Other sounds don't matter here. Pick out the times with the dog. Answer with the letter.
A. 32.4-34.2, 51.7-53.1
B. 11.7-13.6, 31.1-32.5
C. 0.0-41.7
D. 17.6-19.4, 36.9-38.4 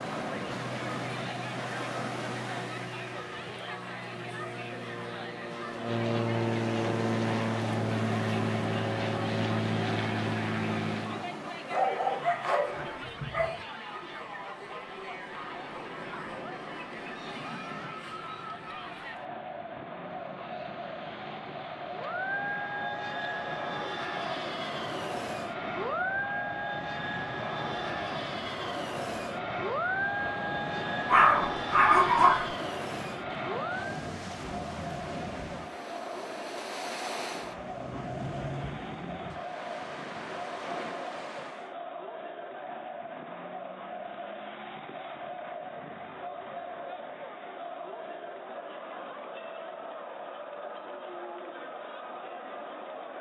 B.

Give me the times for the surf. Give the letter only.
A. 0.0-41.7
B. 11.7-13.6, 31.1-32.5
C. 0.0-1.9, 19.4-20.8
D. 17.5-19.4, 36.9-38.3
A.